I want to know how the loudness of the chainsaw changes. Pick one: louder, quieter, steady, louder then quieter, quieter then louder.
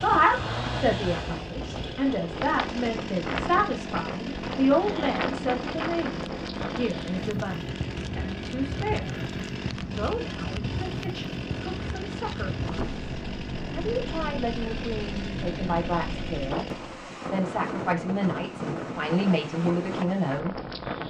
steady.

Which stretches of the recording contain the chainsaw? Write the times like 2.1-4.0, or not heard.
0.0-17.1.